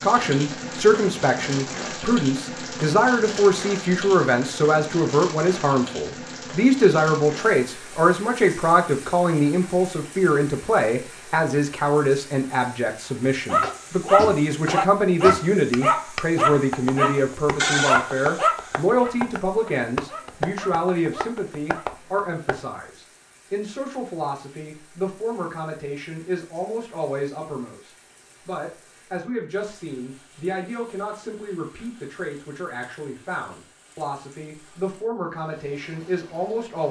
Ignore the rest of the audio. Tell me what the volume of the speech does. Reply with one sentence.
The loudness of the speech goes down.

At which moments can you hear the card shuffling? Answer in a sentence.
You can't hear the card shuffling here.